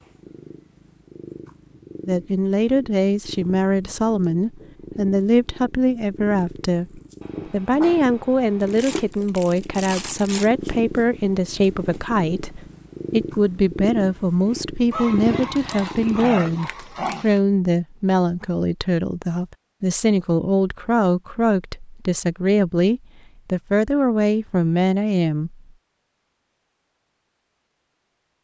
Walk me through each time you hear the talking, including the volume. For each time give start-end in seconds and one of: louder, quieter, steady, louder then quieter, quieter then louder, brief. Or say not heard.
2.0-25.6 steady.